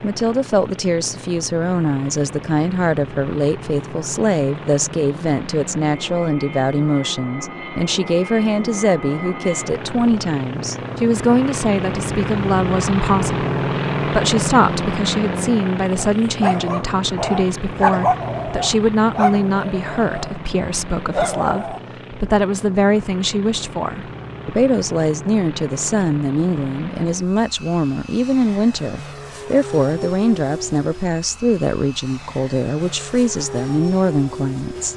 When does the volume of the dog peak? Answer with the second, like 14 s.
18 s.